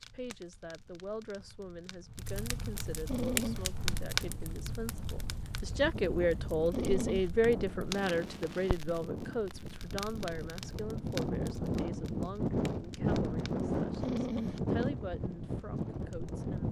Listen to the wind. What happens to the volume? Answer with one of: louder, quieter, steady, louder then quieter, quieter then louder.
louder.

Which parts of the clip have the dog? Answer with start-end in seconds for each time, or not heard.
3.0-3.6, 6.7-7.3, 14.0-14.6.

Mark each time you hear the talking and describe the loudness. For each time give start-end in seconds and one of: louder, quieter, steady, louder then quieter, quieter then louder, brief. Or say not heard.
0.0-16.6 louder then quieter.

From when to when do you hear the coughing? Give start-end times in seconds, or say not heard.
not heard.